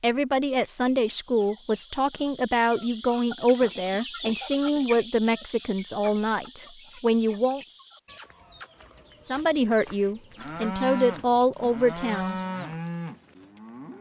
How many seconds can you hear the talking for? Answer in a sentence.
You can hear the talking for 11 seconds altogether.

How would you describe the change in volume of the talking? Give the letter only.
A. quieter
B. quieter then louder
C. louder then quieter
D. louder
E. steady
E.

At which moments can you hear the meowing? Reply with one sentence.
You can't hear the meowing here.